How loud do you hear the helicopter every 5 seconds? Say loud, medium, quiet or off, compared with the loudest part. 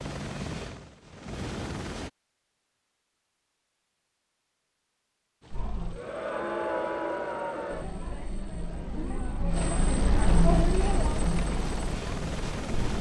loud, medium, loud.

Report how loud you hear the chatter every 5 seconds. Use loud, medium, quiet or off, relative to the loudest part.
off, loud, loud.